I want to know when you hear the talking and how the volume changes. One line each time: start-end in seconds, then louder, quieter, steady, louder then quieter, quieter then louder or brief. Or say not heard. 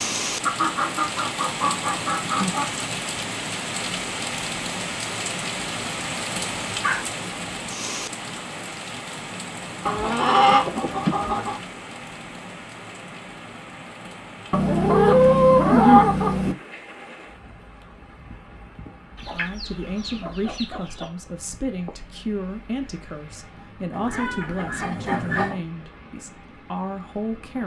19.3-27.6 steady.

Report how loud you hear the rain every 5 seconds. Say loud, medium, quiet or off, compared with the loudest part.
loud, loud, medium, quiet, quiet, quiet.